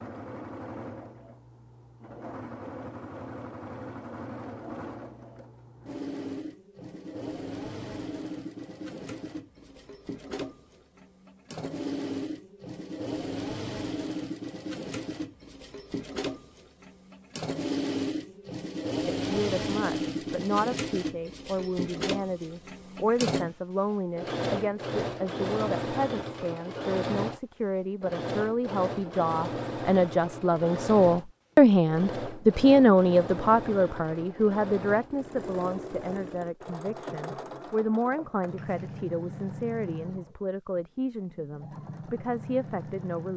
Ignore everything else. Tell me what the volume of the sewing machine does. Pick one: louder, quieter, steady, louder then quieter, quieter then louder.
louder then quieter.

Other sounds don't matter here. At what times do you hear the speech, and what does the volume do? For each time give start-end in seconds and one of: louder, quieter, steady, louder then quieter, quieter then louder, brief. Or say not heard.
19.1-43.3 louder then quieter.